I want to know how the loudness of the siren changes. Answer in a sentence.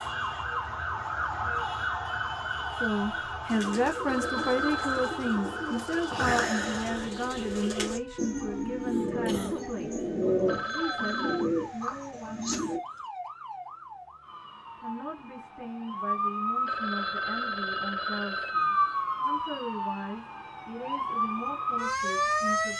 The loudness of the siren goes down, then up.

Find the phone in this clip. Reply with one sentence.
The phone can be heard from 4.0 to 5.2 s, from 10.4 to 11.5 s and from 16.6 to 19.1 s.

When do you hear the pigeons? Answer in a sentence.
The pigeons can be heard from 3.5 to 12.8 s.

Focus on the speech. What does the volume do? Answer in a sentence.
The volume of the speech goes down.